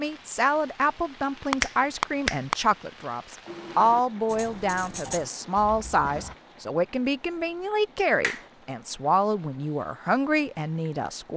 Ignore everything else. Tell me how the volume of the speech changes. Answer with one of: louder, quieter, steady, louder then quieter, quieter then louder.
steady.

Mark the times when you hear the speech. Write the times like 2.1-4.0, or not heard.
0.0-11.3.